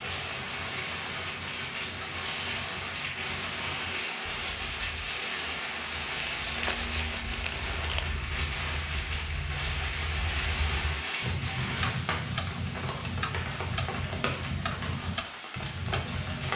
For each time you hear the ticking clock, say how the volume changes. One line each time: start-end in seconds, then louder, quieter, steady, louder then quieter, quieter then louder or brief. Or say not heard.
0.0-16.5 louder.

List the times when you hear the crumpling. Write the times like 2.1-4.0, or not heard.
6.2-8.1.